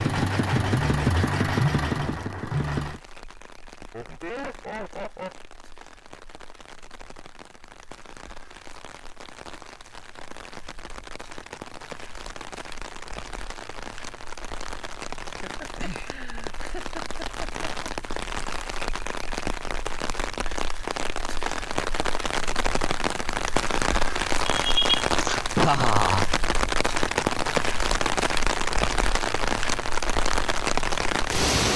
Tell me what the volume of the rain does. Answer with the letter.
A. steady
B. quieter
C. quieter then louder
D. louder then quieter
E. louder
E.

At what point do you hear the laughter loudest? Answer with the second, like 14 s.
26 s.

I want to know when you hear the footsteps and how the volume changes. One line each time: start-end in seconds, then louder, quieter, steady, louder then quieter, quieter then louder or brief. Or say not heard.
not heard.